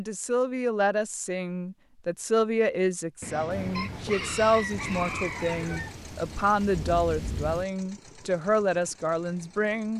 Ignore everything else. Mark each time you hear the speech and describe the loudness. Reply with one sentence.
You can hear the speech from 0.0 to 9.9 s, at a steady volume.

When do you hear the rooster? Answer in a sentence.
The rooster can be heard from 3.2 to 6.0 s.